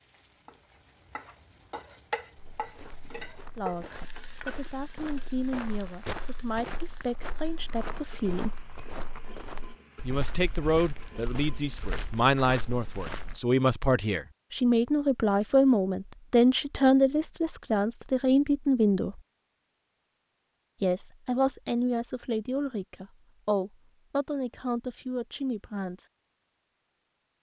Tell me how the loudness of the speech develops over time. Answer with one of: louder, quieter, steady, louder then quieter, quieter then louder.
louder then quieter.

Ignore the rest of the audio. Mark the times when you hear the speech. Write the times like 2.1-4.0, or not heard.
3.5-8.7, 10.1-19.2, 20.8-26.1.